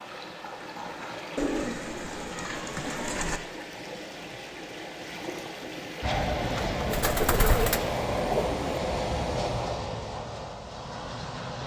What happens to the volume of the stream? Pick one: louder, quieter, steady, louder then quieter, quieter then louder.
steady.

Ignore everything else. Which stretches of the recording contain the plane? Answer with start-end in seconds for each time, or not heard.
6.0-11.6.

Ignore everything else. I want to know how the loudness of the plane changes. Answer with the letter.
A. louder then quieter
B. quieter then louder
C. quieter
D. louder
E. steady
C.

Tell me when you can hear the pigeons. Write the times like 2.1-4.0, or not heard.
1.4-3.4, 6.4-8.8.